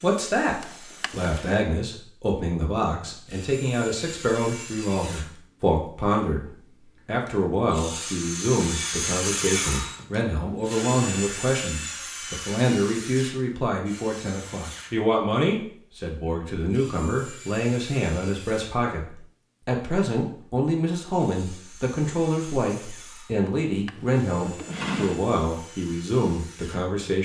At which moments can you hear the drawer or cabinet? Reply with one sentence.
You can hear the drawer or cabinet from 0.6 to 1.6 s and from 23.4 to 25.2 s.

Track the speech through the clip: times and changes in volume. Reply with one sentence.
The speech can be heard briefly from 0.0 to 0.6 s; and from 1.1 to 27.2 s, at a steady volume.